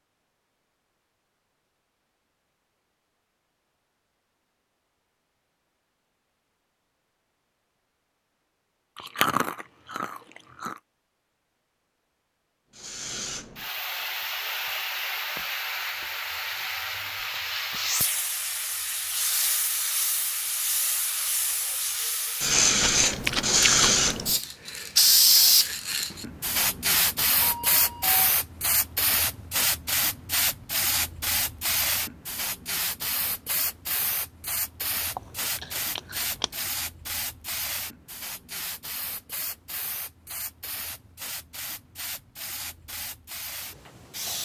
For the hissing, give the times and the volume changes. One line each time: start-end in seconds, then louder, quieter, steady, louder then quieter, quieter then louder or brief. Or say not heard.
12.8-44.4 louder then quieter.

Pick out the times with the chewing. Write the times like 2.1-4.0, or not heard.
8.9-10.8, 22.8-24.3, 35.1-36.7.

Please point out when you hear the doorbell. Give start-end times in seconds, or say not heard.
27.4-28.2.